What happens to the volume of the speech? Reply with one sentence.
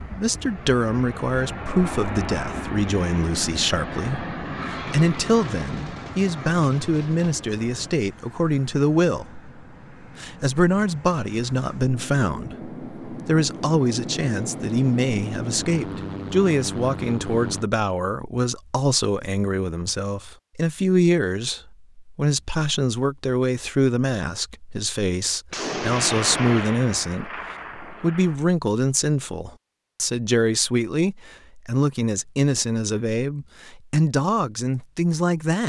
The volume of the speech stays about the same.